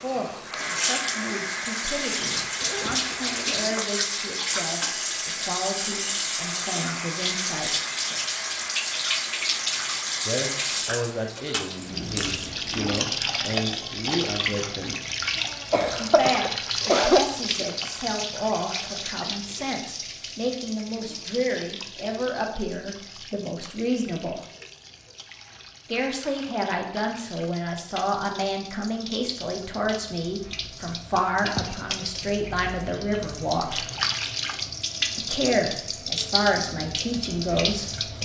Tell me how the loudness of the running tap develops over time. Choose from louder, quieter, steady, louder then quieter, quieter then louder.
quieter then louder.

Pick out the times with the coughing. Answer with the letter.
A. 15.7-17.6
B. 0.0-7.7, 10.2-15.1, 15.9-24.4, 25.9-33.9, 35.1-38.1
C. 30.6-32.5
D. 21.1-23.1
A.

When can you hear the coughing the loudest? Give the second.
17 s.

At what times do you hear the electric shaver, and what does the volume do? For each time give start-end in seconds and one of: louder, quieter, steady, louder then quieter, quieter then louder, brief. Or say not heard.
not heard.